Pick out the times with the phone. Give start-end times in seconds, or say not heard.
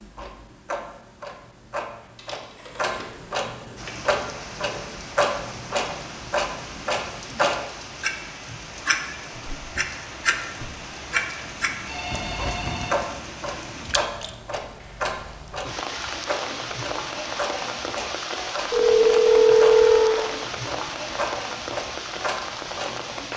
2.1-3.0, 11.8-13.1, 18.7-20.2.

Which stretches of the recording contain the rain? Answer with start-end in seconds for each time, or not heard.
3.8-23.3.